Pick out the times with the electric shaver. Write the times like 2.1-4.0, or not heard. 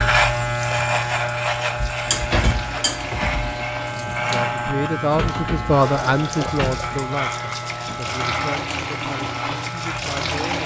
0.0-10.6.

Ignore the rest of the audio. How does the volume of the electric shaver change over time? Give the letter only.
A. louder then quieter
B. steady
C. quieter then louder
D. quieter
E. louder
D.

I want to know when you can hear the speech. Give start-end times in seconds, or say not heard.
4.3-10.6.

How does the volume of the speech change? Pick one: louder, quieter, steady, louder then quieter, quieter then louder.
quieter.